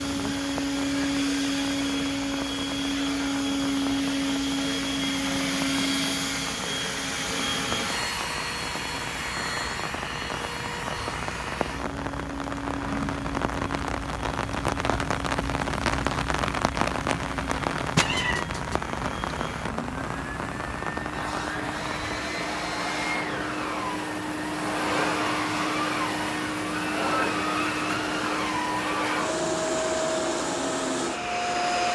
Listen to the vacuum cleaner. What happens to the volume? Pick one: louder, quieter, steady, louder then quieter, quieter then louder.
quieter then louder.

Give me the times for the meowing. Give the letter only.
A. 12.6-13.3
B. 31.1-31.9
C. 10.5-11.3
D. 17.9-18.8
D.